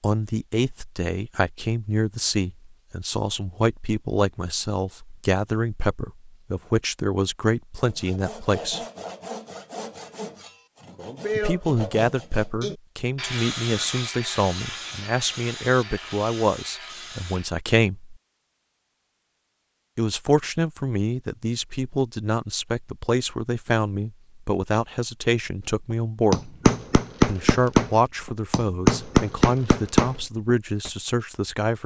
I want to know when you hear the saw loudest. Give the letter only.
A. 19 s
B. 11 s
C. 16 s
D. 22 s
B.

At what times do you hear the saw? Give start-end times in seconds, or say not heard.
7.8-17.5.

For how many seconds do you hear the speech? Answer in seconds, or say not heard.
27 s.